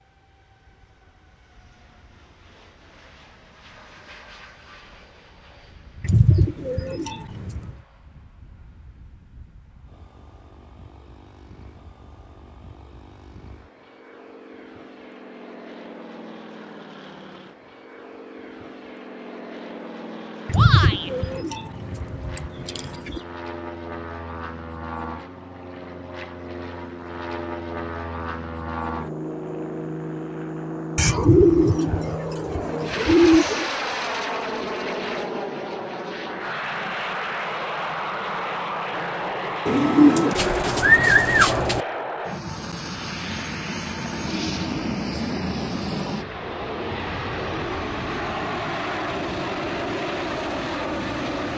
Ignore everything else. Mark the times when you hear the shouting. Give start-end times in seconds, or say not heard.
20.5-21.1.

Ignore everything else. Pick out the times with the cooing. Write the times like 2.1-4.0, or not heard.
6.0-7.7, 20.4-23.2, 30.9-33.7, 39.6-41.9.